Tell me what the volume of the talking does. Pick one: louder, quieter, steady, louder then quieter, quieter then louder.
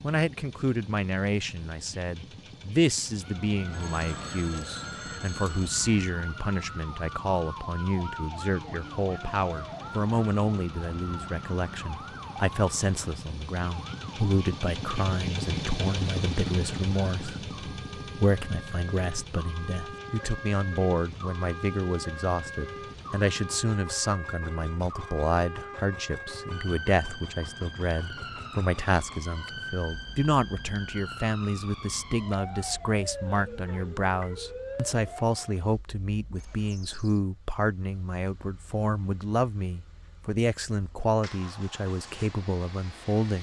steady.